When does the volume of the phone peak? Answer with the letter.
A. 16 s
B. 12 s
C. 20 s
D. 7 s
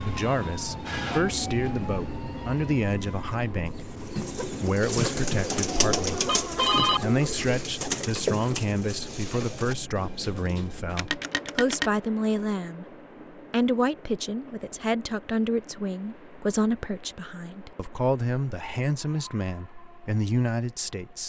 D.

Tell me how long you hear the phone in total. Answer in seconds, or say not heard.
2 s.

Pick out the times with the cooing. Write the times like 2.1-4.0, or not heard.
3.8-10.9.